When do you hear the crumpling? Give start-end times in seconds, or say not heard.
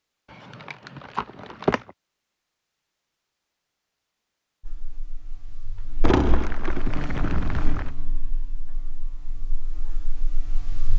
0.3-1.9, 6.0-8.0.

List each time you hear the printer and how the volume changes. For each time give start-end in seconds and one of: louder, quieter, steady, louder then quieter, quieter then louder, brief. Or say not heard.
not heard.